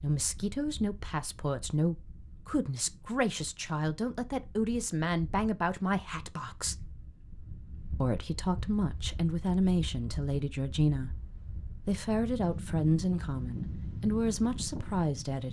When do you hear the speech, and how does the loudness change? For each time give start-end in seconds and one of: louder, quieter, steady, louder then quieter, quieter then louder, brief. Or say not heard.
0.0-6.9 steady
8.0-15.4 steady.